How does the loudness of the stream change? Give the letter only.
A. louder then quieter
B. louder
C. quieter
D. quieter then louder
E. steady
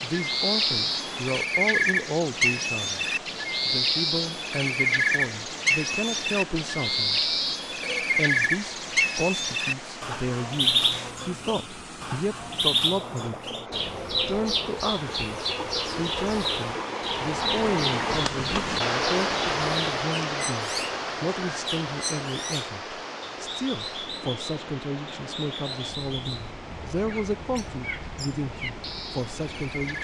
A.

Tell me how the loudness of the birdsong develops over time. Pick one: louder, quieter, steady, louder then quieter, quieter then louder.
quieter.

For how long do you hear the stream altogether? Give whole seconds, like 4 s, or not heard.
30 s.